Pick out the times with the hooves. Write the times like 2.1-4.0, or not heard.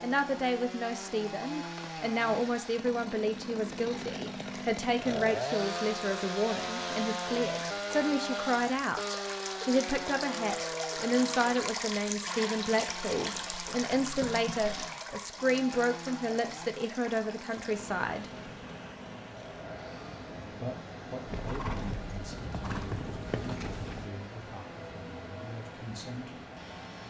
13.2-14.9, 21.2-24.1.